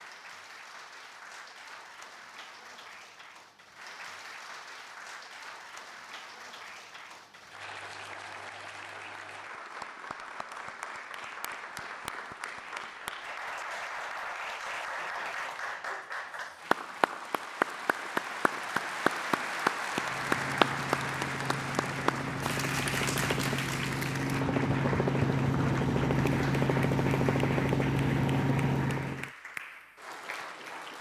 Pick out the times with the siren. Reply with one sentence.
You can't hear the siren here.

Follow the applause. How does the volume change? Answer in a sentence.
The loudness of the applause goes up, then down.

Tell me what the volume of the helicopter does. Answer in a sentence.
The volume of the helicopter goes up.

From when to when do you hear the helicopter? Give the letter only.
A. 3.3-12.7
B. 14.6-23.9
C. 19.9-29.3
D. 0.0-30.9
C.